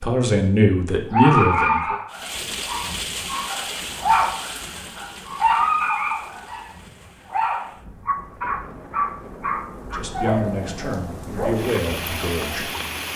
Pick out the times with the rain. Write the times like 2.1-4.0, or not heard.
2.1-13.1.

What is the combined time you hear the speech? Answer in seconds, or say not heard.
5 s.